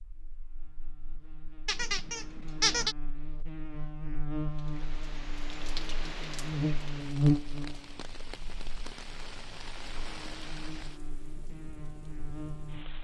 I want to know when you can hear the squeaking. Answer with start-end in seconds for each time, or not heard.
1.6-3.0.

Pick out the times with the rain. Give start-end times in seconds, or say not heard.
4.5-13.0.